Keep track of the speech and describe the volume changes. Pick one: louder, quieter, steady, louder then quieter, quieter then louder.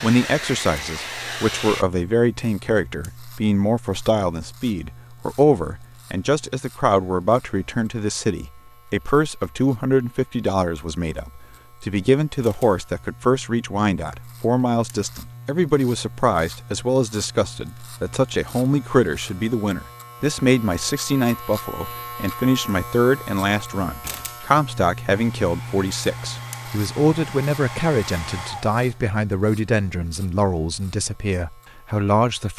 steady.